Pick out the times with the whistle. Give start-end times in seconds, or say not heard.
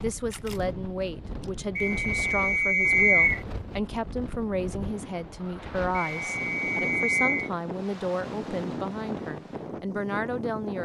1.8-3.4, 6.2-7.5.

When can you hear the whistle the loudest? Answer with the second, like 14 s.
3 s.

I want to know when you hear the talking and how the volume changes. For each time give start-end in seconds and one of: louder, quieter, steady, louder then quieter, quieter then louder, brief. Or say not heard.
0.0-10.7 steady.